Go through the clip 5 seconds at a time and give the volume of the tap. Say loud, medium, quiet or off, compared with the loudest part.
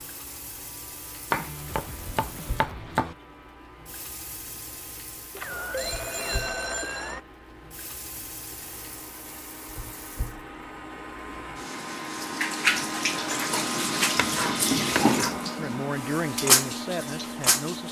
quiet, quiet, loud, loud.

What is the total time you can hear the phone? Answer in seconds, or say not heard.
2 s.